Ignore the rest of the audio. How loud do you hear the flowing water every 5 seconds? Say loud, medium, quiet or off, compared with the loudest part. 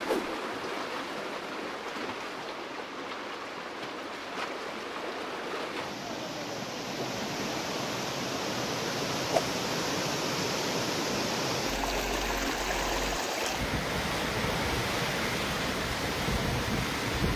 medium, loud, loud, loud.